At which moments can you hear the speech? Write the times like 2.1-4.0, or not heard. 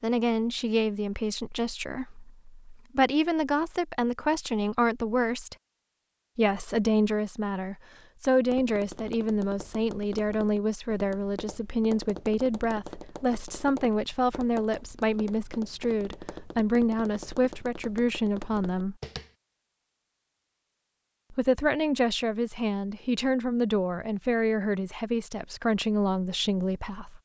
0.0-5.5, 6.3-18.9, 21.3-27.2.